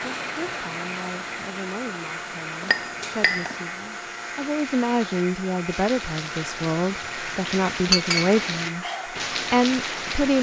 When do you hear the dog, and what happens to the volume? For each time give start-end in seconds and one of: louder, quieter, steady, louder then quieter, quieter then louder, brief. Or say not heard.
not heard.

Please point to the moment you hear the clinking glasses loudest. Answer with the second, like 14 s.
8 s.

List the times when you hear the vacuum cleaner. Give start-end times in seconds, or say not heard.
0.0-10.3.